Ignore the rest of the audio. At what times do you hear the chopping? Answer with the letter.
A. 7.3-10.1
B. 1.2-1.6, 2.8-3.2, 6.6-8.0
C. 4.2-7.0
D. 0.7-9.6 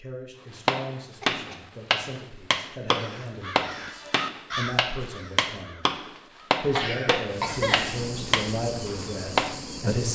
D.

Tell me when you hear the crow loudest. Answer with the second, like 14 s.
5 s.